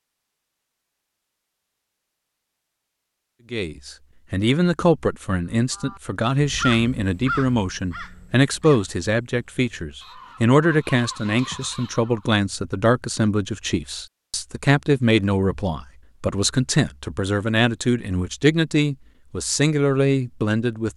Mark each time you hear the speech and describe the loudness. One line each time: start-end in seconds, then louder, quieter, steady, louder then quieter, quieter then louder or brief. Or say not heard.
3.5-20.9 steady.